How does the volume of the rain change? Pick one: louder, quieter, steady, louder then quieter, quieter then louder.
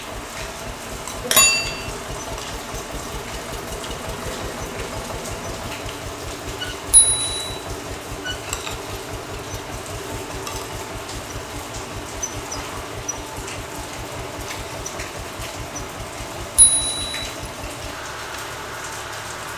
steady.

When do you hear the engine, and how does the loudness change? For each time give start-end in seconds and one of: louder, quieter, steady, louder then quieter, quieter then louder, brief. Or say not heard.
0.0-19.5 steady.